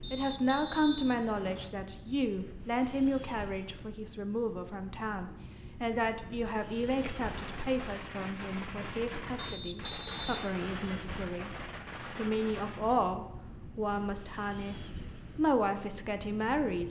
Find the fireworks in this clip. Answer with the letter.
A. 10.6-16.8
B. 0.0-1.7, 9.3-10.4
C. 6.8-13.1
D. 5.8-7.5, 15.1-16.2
C.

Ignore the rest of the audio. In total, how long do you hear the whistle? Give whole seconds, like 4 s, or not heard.
3 s.